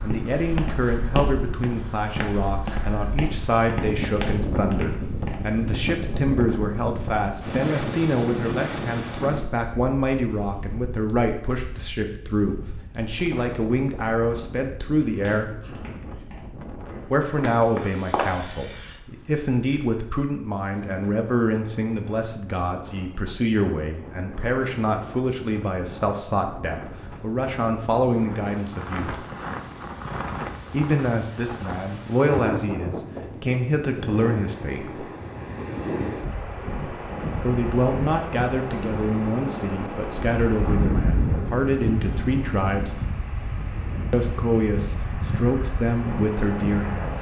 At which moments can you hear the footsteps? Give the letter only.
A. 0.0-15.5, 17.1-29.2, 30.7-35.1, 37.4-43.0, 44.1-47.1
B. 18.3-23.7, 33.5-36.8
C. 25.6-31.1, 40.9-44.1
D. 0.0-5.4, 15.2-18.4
D.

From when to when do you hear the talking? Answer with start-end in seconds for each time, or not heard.
0.0-15.5, 17.1-29.2, 30.7-35.1, 37.4-43.0, 44.1-47.1.